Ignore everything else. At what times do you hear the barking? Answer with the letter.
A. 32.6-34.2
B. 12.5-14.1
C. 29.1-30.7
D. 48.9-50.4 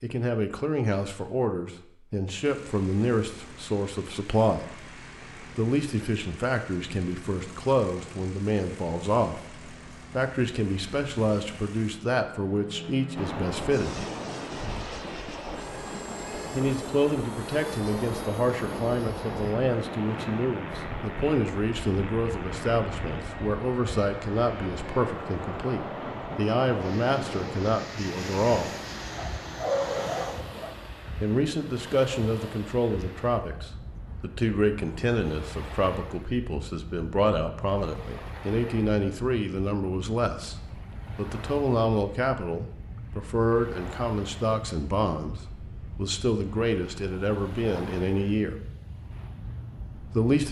C.